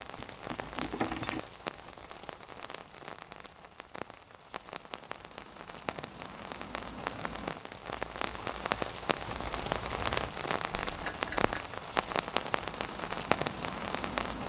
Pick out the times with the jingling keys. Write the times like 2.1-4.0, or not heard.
0.1-1.4, 9.2-10.3.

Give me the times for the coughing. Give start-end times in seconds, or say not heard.
10.7-11.6.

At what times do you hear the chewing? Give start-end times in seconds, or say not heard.
not heard.